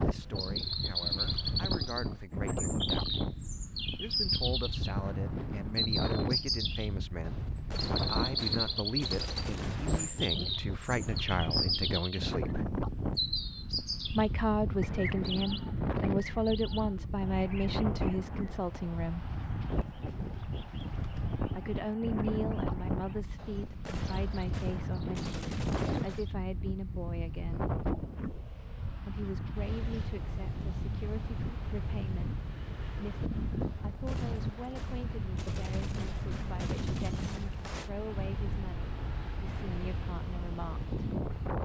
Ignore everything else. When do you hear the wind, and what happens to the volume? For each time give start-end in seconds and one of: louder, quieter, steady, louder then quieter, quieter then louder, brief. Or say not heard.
0.0-41.6 steady.